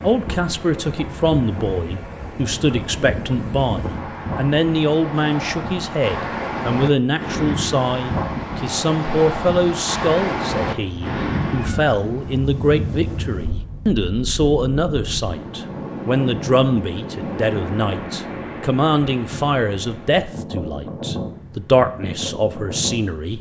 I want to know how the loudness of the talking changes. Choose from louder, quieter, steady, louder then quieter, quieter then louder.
steady.